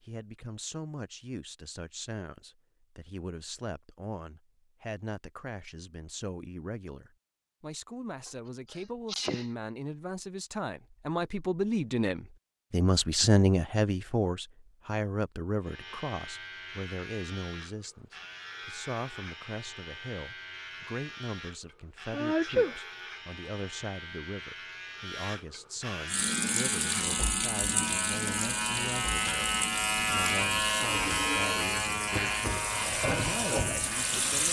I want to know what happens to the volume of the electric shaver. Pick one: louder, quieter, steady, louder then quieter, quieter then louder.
louder.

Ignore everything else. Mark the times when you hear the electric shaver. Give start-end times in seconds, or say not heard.
15.6-34.4.